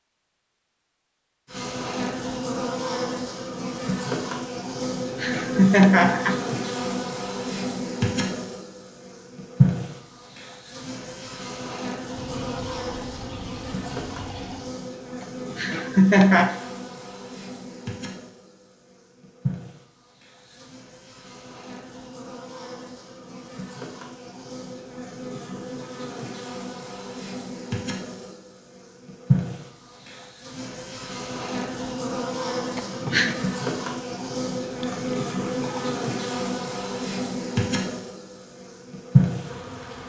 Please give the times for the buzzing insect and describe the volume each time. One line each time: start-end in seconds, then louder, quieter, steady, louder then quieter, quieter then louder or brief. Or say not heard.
1.4-40.0 quieter then louder.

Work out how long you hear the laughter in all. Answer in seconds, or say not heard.
3 s.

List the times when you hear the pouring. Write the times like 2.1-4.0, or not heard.
12.2-14.8, 34.6-36.0.